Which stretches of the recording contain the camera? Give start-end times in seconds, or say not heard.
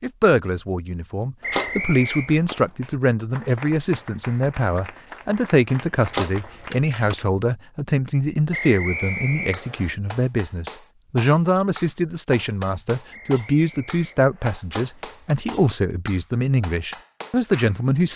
1.5-2.5, 6.1-7.2, 14.7-15.8.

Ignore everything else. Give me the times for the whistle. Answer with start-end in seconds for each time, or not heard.
1.4-2.3, 8.5-9.9, 13.1-14.7.